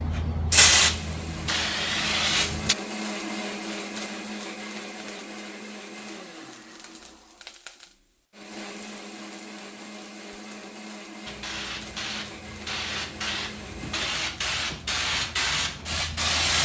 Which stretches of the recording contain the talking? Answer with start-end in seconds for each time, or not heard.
not heard.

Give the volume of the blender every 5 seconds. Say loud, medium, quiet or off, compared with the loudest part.
loud, medium, medium, off.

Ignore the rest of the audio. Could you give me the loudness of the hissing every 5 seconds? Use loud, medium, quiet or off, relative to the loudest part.
loud, off, medium, loud.